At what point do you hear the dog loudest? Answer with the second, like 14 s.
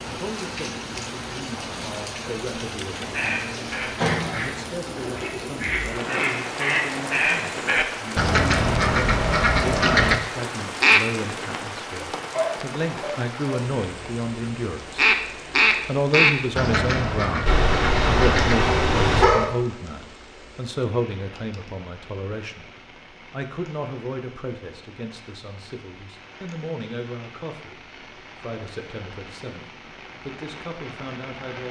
19 s.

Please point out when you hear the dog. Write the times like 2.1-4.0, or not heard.
12.3-13.7, 17.4-19.4.